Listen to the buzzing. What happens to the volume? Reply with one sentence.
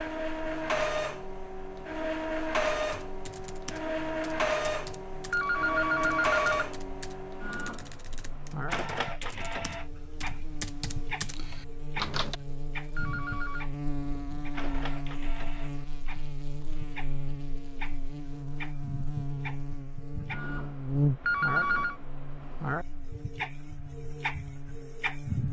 The volume of the buzzing goes up.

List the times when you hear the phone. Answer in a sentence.
You can hear the phone from 5.3 to 6.8 s, from 12.9 to 13.7 s and from 21.2 to 21.9 s.